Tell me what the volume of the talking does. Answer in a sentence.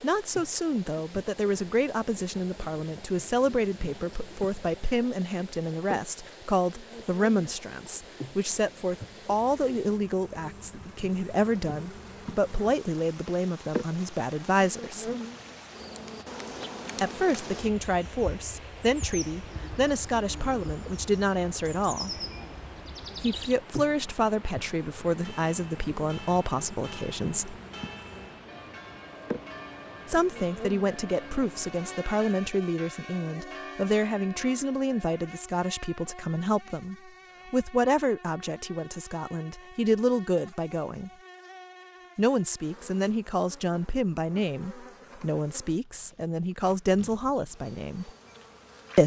The loudness of the talking stays about the same.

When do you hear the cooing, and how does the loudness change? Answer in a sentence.
The cooing can't be heard in this clip.